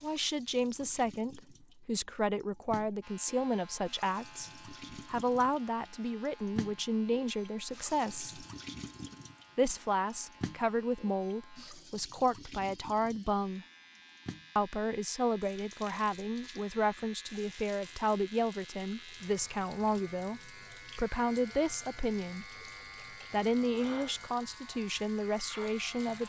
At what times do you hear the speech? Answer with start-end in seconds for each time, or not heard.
0.0-8.4, 9.6-13.7, 14.6-22.4, 23.3-26.2.